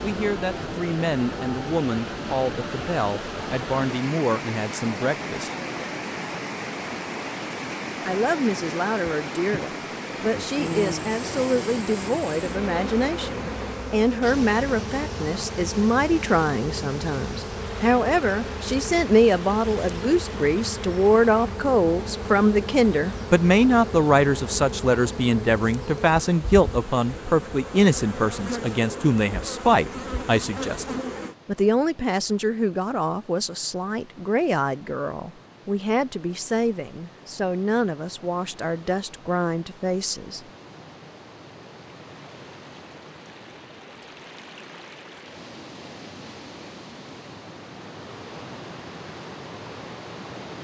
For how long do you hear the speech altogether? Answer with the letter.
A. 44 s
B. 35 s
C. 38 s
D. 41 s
C.